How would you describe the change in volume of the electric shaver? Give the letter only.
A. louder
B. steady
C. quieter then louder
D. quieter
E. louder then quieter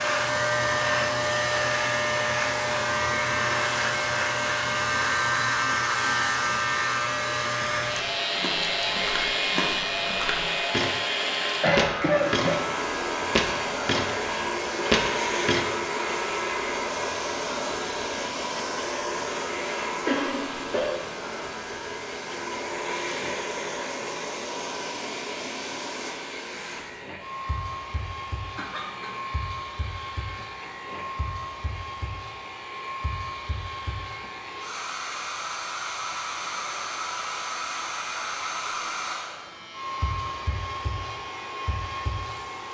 D.